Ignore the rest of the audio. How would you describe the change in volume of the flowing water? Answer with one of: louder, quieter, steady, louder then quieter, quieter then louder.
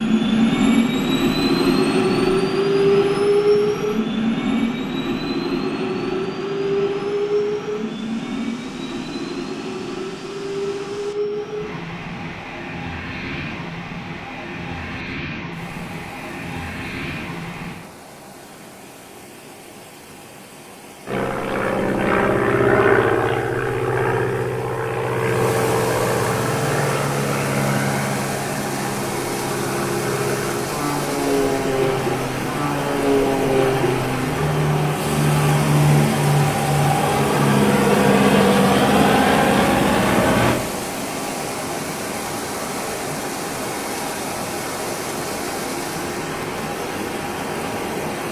louder.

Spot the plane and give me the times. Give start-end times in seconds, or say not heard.
0.0-17.8, 21.1-40.6.